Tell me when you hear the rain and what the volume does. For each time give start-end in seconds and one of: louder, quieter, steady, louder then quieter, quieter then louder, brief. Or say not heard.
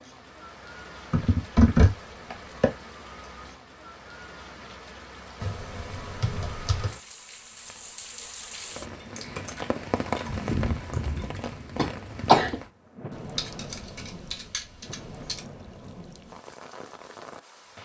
0.0-17.8 louder then quieter.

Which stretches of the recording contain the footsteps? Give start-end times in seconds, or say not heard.
not heard.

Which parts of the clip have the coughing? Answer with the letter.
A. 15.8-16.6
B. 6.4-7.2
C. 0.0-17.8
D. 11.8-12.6
D.